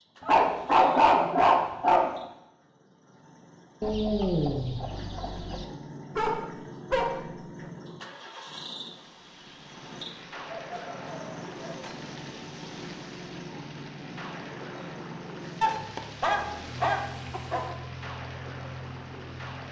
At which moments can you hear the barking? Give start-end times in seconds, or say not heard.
0.2-2.1, 6.2-7.2, 10.4-11.9, 15.6-17.6.